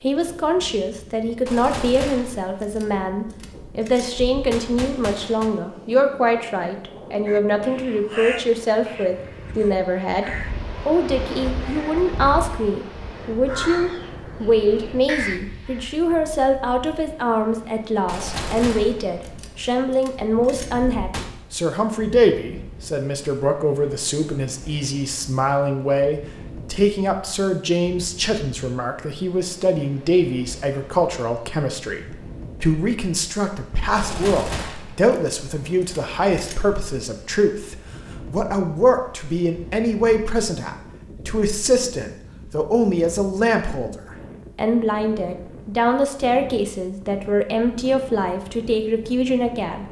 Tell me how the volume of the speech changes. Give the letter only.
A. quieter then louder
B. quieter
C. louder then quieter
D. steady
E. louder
D.